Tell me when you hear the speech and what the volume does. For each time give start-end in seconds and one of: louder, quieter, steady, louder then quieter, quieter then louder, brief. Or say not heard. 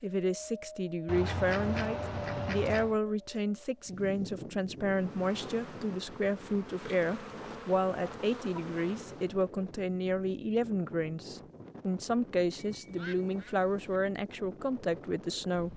0.0-15.7 steady.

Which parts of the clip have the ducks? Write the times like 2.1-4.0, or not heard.
1.1-3.0, 12.6-13.9.